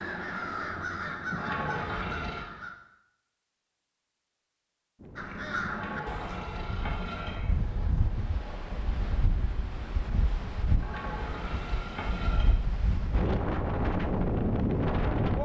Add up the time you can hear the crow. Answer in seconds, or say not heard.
6 s.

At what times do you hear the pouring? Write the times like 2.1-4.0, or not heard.
1.3-2.5, 5.6-7.4, 10.8-12.5.